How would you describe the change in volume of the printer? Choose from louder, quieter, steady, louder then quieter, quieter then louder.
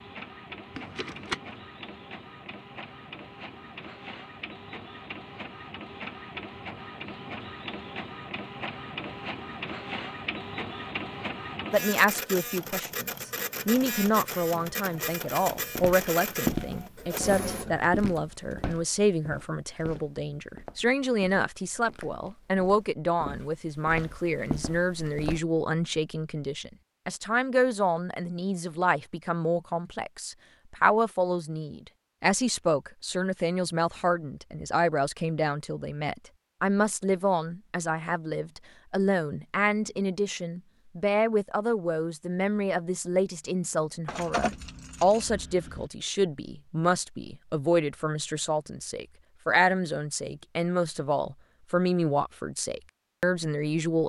louder.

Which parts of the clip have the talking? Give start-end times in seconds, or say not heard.
11.7-54.0.